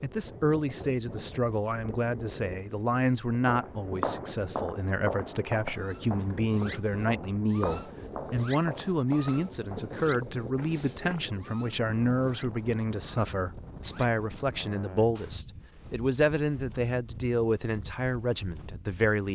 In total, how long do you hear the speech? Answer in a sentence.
The speech can be heard for 19 seconds in total.